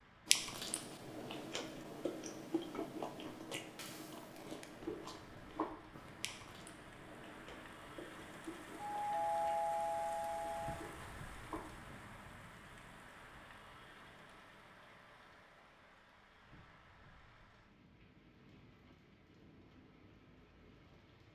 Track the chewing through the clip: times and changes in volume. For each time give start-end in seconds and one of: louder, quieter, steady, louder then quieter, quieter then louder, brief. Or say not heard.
0.2-12.1 quieter.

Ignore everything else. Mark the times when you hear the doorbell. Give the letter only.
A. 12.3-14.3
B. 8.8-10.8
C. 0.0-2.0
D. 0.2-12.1
B.